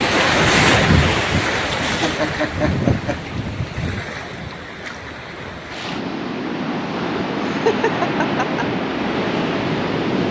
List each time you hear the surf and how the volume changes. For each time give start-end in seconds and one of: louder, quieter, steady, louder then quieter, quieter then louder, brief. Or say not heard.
0.0-10.2 quieter then louder.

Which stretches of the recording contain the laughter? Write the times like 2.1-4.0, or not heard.
1.9-3.1, 7.3-8.7.